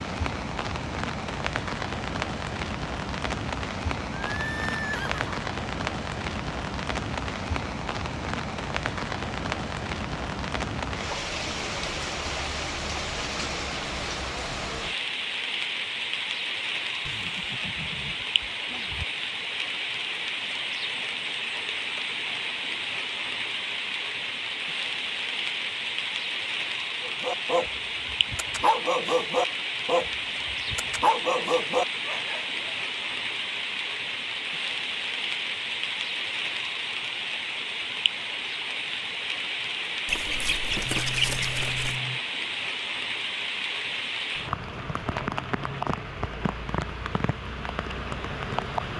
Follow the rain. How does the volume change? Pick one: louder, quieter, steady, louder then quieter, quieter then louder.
steady.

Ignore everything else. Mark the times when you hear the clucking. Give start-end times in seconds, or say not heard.
40.0-42.0.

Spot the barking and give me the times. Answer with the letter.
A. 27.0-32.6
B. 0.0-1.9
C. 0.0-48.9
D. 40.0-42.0
A.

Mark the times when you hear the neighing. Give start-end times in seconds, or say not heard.
4.3-5.4, 17.1-19.1, 40.9-42.2.